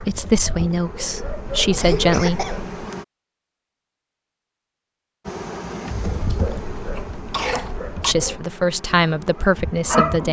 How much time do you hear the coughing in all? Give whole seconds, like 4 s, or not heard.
2 s.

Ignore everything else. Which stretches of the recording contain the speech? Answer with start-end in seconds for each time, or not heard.
0.0-2.5, 8.1-10.2.